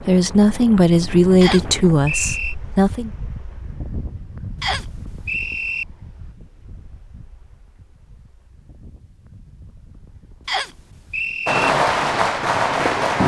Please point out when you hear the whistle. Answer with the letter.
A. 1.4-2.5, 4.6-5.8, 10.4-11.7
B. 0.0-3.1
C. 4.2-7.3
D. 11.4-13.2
A.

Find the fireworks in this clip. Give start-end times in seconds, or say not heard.
11.4-13.2.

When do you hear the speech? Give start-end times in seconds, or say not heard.
0.0-3.1.